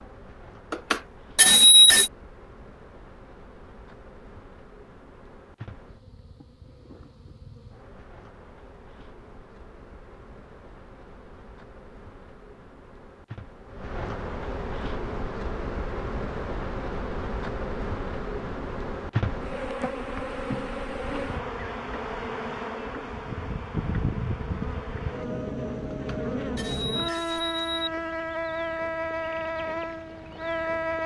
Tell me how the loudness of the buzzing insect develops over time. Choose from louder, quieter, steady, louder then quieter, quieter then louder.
louder.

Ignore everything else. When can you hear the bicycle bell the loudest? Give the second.
2 s.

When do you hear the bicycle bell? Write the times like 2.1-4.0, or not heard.
0.7-2.1, 25.9-27.9.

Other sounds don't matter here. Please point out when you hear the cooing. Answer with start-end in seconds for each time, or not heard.
not heard.